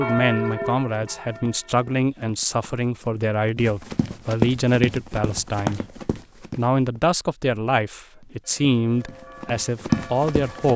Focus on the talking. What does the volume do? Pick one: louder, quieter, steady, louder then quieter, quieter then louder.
steady.